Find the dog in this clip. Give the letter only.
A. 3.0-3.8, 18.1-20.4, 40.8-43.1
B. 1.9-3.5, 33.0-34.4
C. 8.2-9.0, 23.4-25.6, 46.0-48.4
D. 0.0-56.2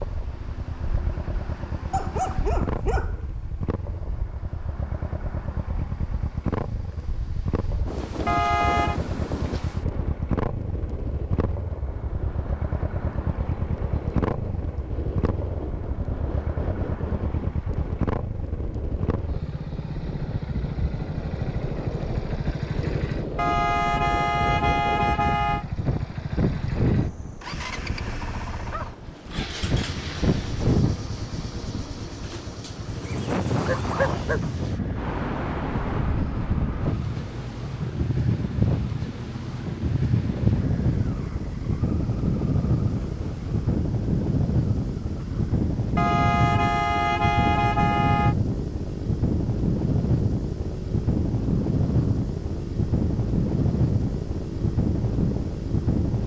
B.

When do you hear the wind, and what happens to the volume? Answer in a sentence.
The wind can be heard from 0.0 to 56.2 s, getting louder.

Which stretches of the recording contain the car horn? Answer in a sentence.
The car horn can be heard from 8.2 to 9.0 s, from 23.4 to 25.6 s and from 46.0 to 48.4 s.